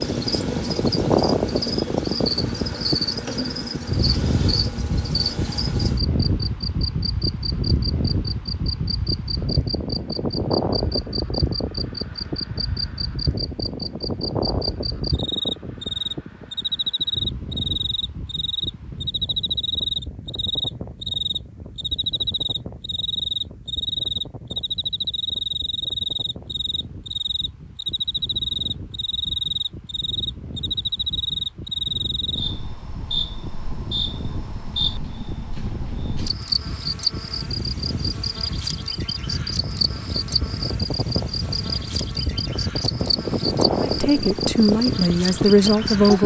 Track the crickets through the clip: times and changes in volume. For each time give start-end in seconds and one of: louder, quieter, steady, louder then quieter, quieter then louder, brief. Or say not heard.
0.0-46.2 steady.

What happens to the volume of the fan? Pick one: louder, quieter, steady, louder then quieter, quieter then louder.
quieter then louder.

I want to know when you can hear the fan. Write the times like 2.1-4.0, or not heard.
0.0-46.2.